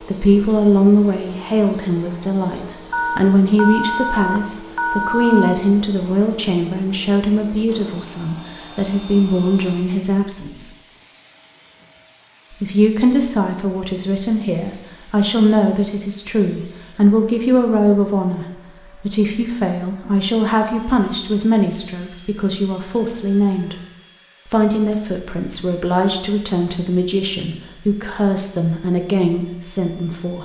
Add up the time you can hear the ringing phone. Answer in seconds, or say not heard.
4 s.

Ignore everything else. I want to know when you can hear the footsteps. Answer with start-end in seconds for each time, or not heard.
not heard.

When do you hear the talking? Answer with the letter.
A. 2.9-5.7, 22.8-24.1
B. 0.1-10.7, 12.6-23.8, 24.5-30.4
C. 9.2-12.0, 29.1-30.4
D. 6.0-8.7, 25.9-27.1
B.